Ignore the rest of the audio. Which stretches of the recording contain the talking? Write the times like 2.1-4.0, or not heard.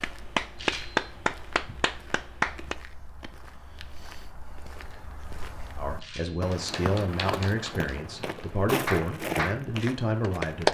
5.8-10.6.